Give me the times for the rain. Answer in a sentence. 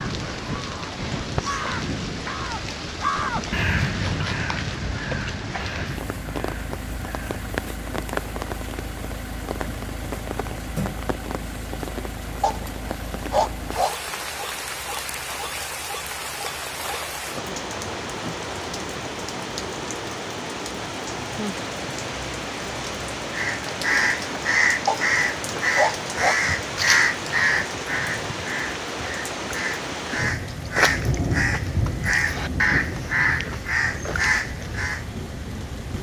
The rain can be heard from 0.0 to 35.9 s.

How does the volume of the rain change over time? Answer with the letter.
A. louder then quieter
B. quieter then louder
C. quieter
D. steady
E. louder
D.